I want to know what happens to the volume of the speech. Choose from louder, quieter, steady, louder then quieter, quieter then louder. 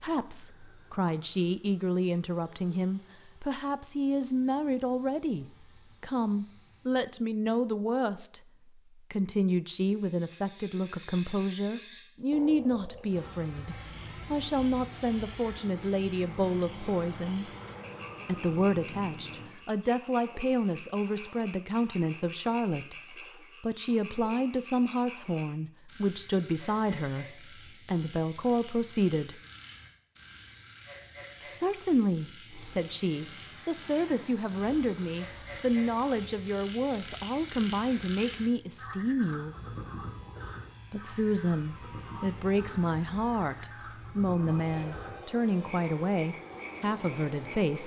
steady.